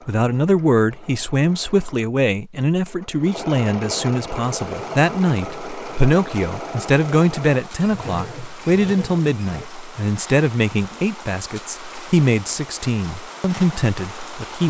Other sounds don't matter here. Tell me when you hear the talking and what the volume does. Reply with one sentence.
You can hear the talking from 0.1 to 14.6 s, at a steady volume.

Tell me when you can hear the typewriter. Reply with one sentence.
You can't hear the typewriter here.